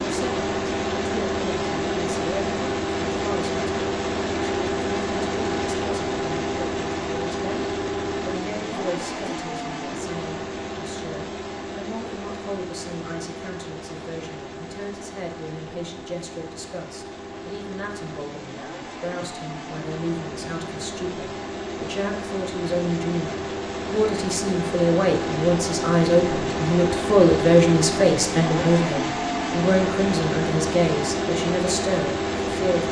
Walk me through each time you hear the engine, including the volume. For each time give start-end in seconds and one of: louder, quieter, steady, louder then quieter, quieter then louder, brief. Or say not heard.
0.0-32.8 quieter then louder.